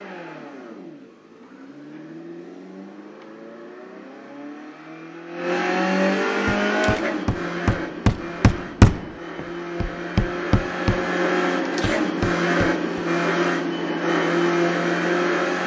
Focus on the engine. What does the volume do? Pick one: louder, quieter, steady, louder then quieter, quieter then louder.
louder.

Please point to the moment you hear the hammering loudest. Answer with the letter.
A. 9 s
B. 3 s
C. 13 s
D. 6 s
A.